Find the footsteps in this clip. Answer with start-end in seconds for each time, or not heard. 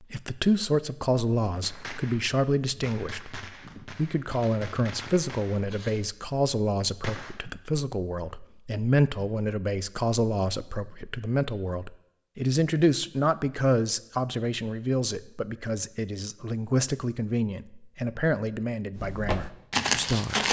18.9-20.4.